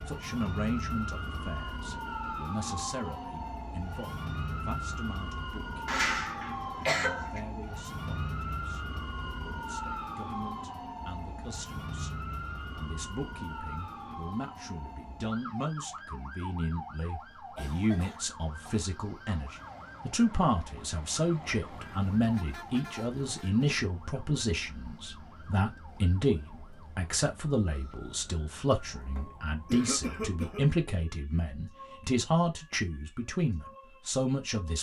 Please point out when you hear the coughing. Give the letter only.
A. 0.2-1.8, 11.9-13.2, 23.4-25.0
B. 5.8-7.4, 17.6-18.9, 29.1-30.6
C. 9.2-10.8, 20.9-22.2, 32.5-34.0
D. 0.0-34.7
B.